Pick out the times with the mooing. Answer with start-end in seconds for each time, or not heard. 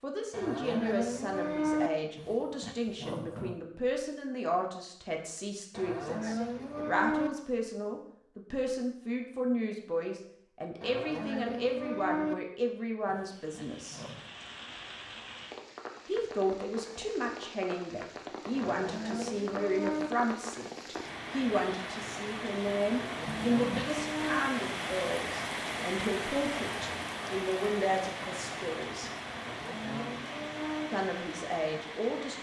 0.3-1.9, 5.7-7.3, 10.8-12.3, 18.5-20.1, 22.9-24.4, 29.3-30.9.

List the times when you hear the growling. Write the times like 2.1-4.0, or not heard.
2.1-3.6, 13.1-14.3, 23.2-24.1.